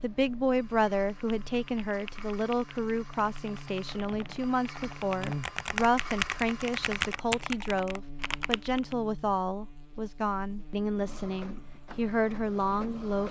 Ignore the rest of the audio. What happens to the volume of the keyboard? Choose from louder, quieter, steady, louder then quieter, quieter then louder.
louder.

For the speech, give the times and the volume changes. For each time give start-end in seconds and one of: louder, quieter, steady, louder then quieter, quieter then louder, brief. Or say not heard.
0.0-13.2 steady.